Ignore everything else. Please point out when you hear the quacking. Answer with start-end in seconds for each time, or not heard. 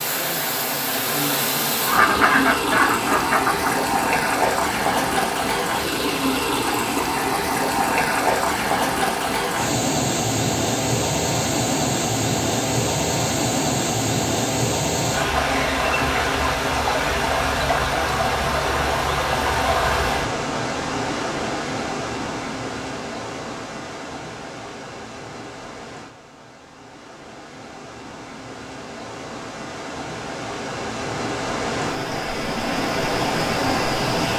1.8-3.7.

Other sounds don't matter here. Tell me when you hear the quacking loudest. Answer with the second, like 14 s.
2 s.